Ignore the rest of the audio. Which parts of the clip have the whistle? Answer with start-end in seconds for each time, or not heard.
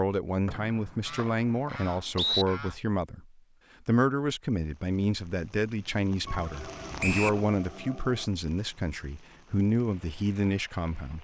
0.5-2.5, 7.0-7.4.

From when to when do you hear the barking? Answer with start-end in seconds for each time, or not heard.
not heard.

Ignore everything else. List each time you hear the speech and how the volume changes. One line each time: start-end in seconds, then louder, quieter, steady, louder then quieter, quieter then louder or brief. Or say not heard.
0.0-11.1 steady.